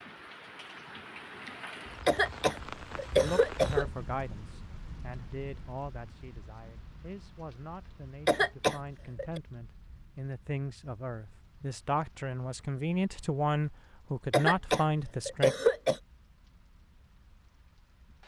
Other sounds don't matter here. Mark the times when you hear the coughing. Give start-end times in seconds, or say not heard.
2.0-3.9, 8.2-9.4, 14.3-16.0.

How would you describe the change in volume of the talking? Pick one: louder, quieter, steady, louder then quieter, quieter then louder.
quieter then louder.